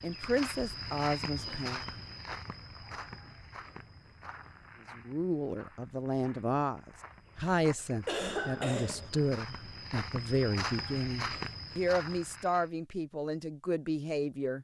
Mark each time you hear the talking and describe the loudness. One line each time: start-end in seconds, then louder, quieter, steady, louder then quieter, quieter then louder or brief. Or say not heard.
0.0-1.8 brief
5.0-14.5 steady.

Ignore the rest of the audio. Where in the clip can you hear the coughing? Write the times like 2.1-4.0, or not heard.
8.1-9.1.